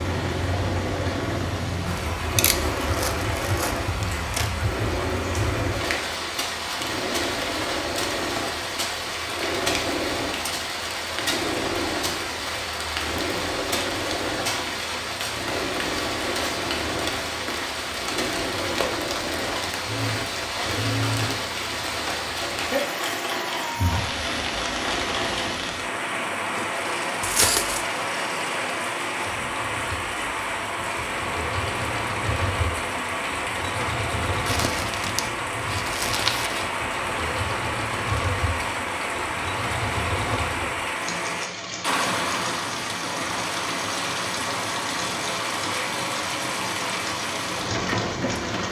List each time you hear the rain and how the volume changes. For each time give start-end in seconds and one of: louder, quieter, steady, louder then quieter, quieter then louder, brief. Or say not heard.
0.0-48.6 steady.